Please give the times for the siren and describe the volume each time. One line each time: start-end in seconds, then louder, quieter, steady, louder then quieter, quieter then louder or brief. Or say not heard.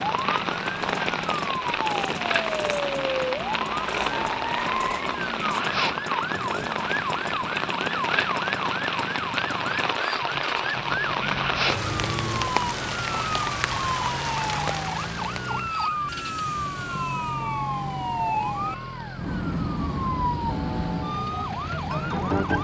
0.0-22.5 steady.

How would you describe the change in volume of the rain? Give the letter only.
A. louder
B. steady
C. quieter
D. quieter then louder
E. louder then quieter
B.